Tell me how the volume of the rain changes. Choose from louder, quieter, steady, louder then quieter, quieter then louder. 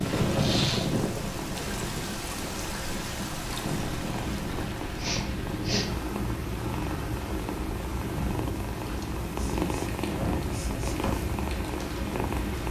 quieter.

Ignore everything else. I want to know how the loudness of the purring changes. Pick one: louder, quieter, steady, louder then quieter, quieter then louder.
louder.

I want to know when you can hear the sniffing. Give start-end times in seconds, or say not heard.
0.3-0.9, 5.0-5.9, 9.3-11.2.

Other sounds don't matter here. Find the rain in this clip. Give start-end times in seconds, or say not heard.
0.0-12.6.